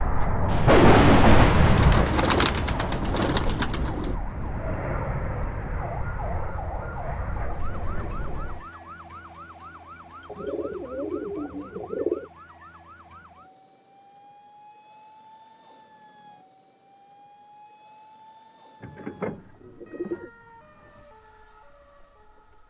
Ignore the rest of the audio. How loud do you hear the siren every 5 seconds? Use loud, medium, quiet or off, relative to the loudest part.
loud, loud, medium, quiet, quiet.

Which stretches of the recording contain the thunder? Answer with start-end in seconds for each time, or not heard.
0.5-3.0.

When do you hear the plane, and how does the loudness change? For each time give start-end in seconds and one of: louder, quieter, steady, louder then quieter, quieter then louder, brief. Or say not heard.
0.0-8.7 quieter.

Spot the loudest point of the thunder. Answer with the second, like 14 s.
1 s.